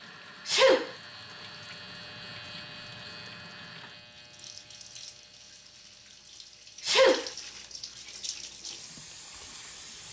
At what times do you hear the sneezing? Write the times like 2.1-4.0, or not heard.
0.5-0.9, 6.8-7.3.